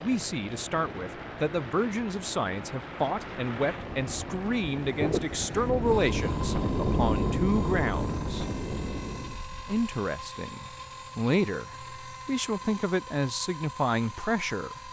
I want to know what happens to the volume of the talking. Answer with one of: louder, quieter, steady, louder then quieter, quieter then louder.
steady.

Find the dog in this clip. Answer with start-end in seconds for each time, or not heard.
not heard.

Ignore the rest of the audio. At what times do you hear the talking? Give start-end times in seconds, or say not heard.
0.0-8.4, 9.7-14.8.